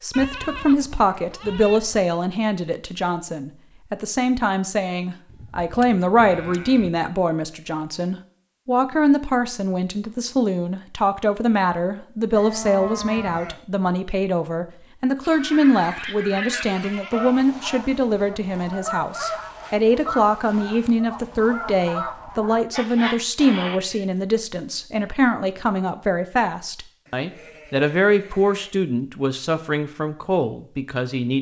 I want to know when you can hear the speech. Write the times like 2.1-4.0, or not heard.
0.0-31.3.